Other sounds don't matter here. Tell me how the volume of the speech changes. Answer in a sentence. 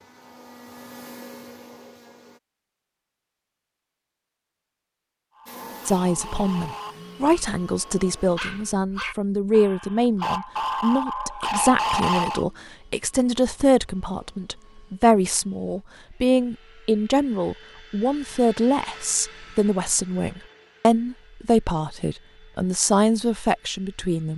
The volume of the speech stays about the same.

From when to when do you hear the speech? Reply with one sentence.
The speech can be heard from 5.8 to 24.3 s.